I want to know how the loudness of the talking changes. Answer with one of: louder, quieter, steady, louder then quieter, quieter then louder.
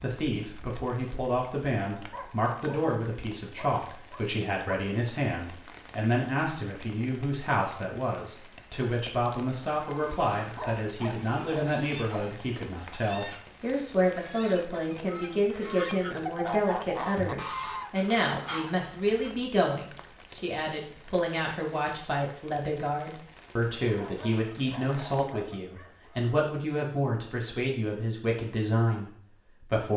steady.